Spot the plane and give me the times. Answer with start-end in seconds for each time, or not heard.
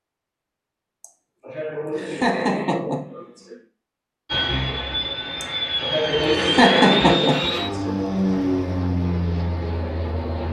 4.2-10.4.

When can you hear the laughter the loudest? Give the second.
7 s.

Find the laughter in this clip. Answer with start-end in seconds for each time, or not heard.
1.0-3.5, 5.4-8.0.